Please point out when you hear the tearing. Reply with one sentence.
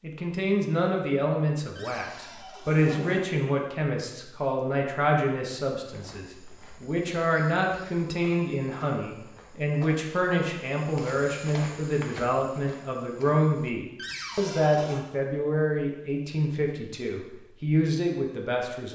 You can't hear the tearing here.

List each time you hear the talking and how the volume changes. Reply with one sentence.
You can hear the talking from 0.0 to 18.9 s, at a steady volume.